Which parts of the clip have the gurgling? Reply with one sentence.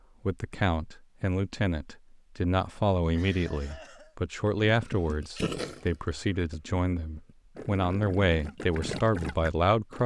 You can hear the gurgling from 4.6 to 10.0 s.